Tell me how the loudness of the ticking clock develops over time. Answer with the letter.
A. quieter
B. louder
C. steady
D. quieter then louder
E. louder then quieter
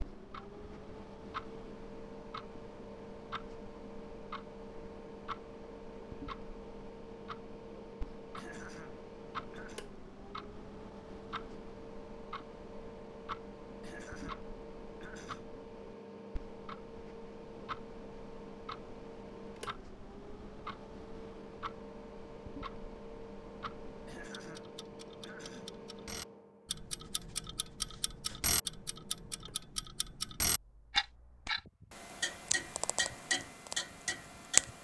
B.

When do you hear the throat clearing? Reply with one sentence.
The throat clearing can be heard from 8.3 to 9.8 s, from 13.8 to 15.6 s and from 24.1 to 25.9 s.